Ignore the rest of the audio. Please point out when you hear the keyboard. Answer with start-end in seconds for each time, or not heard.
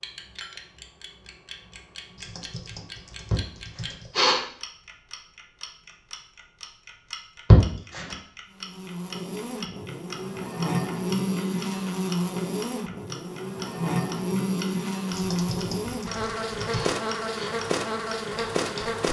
2.1-4.2, 15.1-16.9.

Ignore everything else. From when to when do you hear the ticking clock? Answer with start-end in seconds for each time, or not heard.
0.0-19.0.